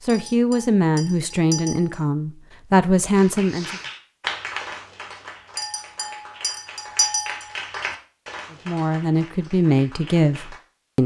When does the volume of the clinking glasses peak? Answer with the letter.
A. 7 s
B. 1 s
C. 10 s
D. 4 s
A.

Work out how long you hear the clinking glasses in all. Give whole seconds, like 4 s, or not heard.
4 s.